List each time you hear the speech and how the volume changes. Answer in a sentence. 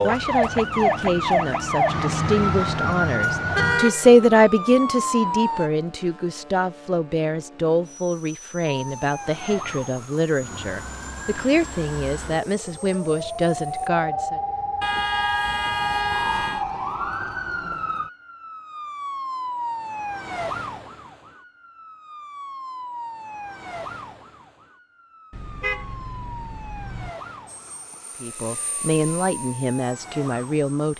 You can hear the speech from 0.0 to 14.4 s, getting louder then quieter; and briefly from 28.2 to 30.9 s.